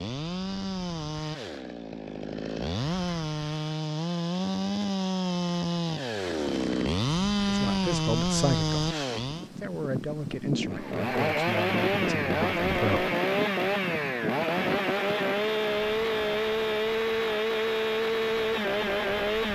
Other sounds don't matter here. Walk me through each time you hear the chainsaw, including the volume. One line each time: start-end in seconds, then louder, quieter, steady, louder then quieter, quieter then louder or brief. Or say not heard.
0.0-9.5 louder
10.7-19.5 steady.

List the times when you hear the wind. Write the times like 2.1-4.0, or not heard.
9.2-19.5.